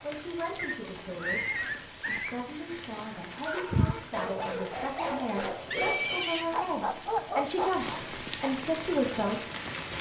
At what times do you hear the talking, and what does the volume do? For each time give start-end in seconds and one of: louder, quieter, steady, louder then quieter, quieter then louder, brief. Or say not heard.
0.0-9.4 louder.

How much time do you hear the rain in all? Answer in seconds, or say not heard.
10 s.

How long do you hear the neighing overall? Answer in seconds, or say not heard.
3 s.